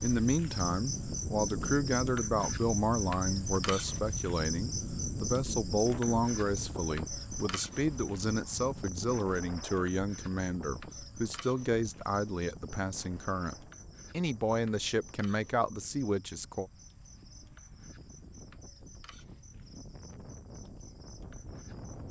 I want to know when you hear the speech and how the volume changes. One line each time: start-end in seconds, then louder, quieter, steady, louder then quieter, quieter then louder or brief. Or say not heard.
0.0-16.7 steady.